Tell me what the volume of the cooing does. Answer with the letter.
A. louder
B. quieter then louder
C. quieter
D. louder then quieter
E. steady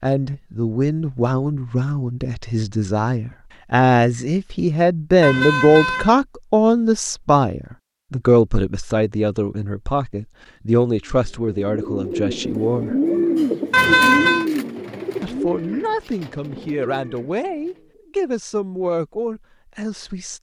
D.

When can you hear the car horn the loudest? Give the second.
14 s.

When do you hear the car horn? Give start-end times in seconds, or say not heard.
5.2-6.2, 13.7-14.4.